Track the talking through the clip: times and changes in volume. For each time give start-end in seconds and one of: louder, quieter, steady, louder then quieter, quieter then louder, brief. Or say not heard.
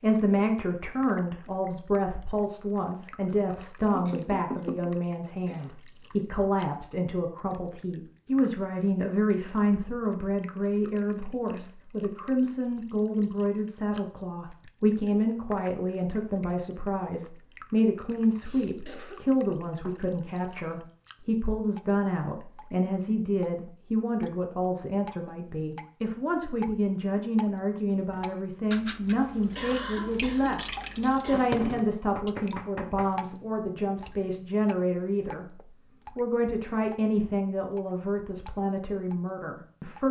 0.0-40.0 steady.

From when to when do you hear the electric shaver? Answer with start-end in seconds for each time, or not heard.
not heard.